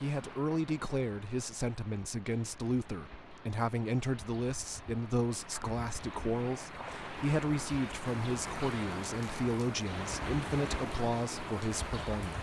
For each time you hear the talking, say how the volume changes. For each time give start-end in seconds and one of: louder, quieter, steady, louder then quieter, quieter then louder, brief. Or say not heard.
0.0-12.3 steady.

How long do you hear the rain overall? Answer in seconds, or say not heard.
12 s.